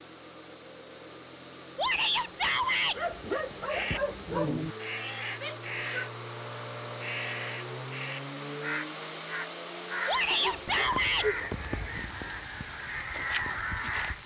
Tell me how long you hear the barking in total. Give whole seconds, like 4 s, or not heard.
3 s.